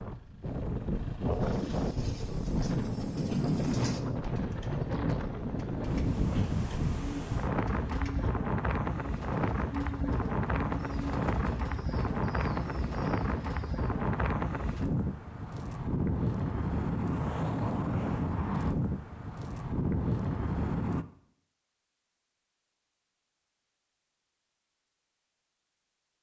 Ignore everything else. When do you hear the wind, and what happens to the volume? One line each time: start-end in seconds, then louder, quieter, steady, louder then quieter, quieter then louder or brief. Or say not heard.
0.0-21.1 steady.